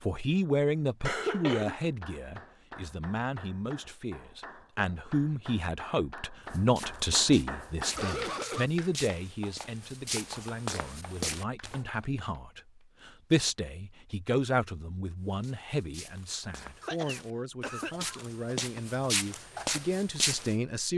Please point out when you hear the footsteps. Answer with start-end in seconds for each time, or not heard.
6.4-11.8, 15.2-20.6.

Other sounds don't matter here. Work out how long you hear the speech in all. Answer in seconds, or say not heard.
21 s.